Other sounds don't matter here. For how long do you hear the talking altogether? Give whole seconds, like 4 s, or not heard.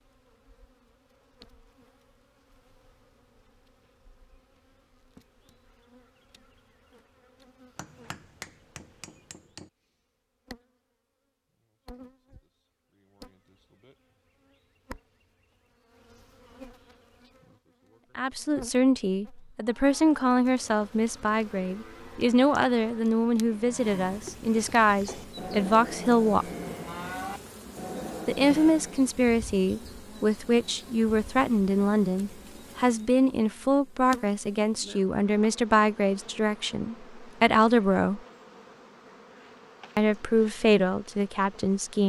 20 s.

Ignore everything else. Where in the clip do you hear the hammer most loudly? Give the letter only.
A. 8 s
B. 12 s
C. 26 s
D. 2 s
A.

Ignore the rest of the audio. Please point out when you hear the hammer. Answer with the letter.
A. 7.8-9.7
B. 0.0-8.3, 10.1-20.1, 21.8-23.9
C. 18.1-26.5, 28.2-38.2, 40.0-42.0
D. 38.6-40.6
A.